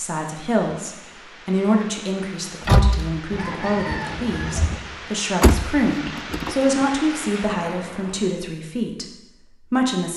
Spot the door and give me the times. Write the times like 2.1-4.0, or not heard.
2.6-3.1, 5.4-6.8.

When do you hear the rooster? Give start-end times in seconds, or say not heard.
3.3-4.8.